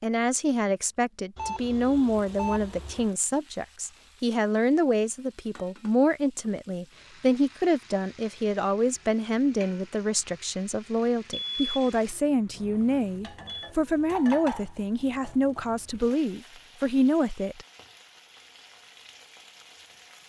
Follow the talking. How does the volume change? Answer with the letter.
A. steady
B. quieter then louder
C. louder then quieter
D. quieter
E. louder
A.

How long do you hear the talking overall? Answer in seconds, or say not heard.
18 s.